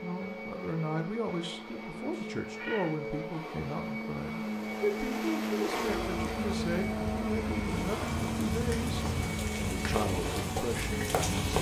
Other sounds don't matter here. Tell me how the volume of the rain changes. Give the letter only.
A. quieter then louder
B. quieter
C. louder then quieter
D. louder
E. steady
D.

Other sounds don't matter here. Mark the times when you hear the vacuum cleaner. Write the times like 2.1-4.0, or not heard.
0.0-11.3.